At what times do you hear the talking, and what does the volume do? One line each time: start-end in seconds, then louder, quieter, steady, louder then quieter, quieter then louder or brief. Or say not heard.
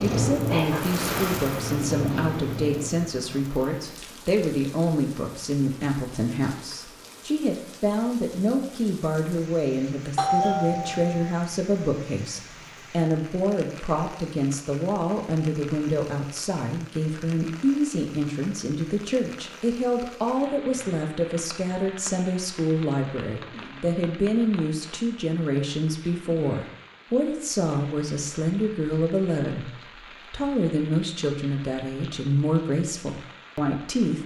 0.0-34.2 steady.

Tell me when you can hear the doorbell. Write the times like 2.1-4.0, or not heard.
10.2-11.3.